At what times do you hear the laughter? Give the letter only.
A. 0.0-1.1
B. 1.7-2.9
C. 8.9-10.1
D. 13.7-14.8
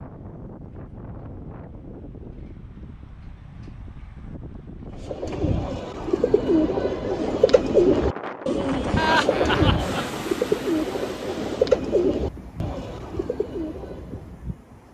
C.